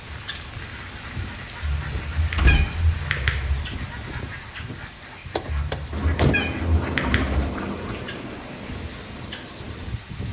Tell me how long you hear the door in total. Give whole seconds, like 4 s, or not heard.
2 s.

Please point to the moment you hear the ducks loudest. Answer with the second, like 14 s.
7 s.